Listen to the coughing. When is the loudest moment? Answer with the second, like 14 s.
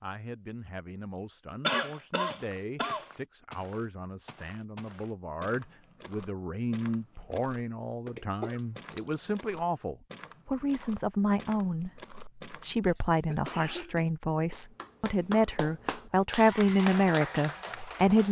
2 s.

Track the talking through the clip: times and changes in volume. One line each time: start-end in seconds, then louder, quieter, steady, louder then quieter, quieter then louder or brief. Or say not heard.
0.0-18.2 louder.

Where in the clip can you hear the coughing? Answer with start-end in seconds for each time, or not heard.
1.6-3.0, 8.4-9.2, 12.8-14.1.